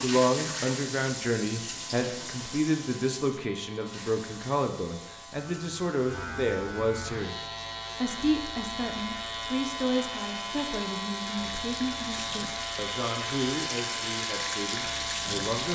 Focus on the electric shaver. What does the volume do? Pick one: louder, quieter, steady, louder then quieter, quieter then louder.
louder.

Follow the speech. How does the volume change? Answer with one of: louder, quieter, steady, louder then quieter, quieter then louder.
quieter.